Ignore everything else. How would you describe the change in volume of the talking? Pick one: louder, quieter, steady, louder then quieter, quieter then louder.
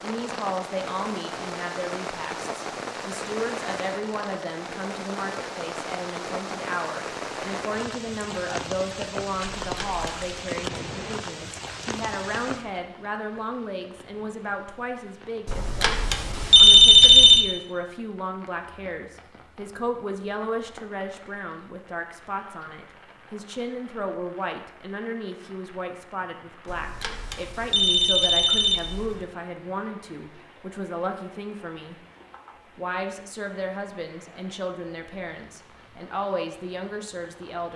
steady.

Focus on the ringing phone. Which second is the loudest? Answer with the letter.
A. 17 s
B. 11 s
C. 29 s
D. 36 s
A.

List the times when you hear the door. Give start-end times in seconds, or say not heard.
not heard.